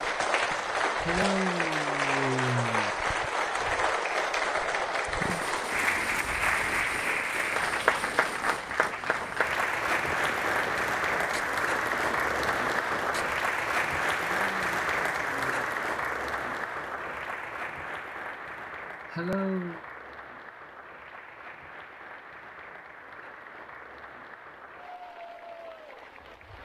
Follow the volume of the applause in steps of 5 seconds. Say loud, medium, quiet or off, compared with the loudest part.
loud, loud, loud, medium, quiet, quiet.